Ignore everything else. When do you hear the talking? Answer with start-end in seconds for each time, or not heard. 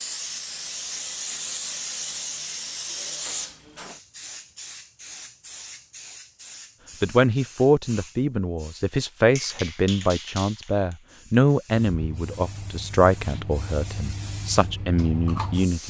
7.0-15.8.